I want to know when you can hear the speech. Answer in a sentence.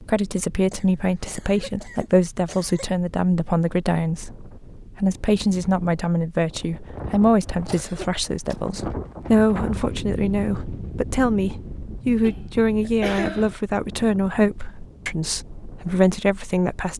You can hear the speech from 0.0 to 16.9 s.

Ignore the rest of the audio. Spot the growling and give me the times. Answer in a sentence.
You can't hear the growling here.